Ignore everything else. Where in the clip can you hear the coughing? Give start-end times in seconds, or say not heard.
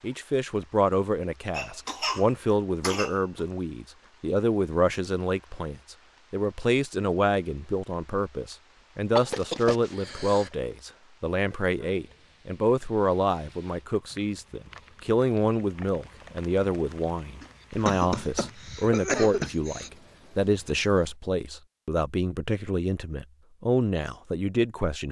1.5-3.5, 9.2-10.5, 17.4-19.9.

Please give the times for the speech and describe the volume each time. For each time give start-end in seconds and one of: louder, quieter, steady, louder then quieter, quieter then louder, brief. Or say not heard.
0.0-25.0 steady.